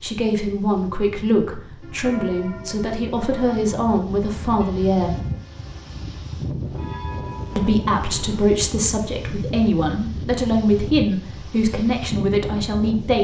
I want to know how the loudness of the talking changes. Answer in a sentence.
The volume of the talking stays about the same.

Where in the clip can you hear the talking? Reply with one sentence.
You can hear the talking from 0.0 to 5.2 s and from 7.5 to 13.2 s.